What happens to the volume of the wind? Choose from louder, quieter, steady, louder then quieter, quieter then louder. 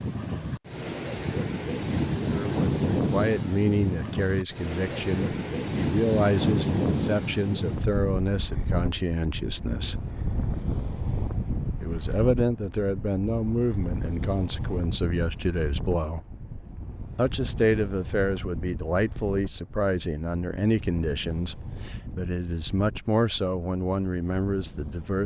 quieter.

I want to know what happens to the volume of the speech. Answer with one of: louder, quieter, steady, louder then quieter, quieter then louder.
steady.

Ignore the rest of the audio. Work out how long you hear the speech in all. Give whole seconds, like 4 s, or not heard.
20 s.